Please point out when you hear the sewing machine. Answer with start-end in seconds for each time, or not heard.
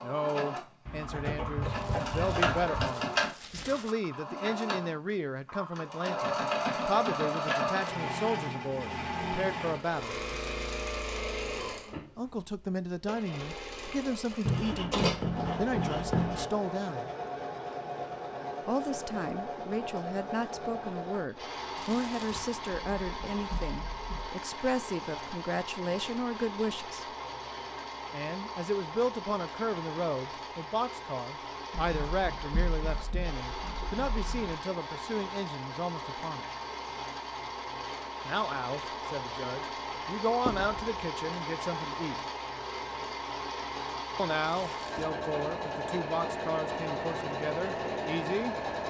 0.0-48.8.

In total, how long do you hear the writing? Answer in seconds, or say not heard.
9 s.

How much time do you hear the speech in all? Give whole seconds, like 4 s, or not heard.
40 s.